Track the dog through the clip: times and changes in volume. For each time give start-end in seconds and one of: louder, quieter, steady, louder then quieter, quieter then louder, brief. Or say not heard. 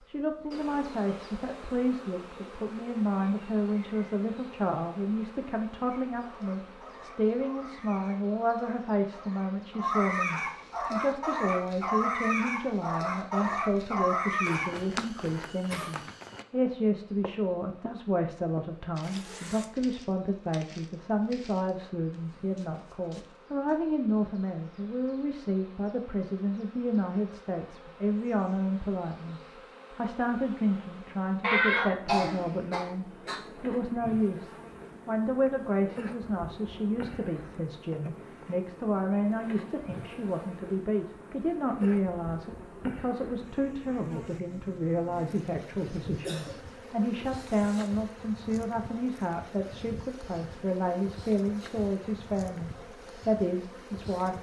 5.9-14.7 louder.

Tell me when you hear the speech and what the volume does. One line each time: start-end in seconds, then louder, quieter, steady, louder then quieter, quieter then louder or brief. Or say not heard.
0.1-54.3 steady.